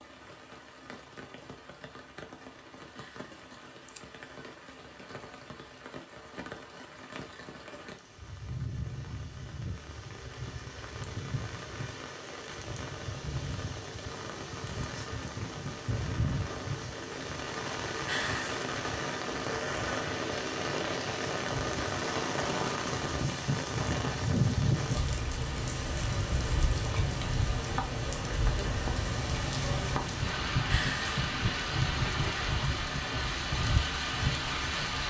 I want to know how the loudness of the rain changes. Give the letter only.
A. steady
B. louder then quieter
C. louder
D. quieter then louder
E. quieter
C.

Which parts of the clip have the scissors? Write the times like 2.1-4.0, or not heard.
3.0-4.0, 18.1-18.6, 30.7-31.2.